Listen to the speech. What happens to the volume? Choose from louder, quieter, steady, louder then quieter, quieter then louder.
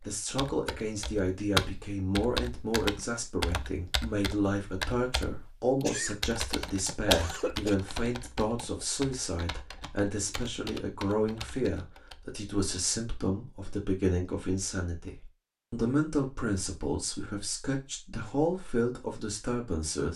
steady.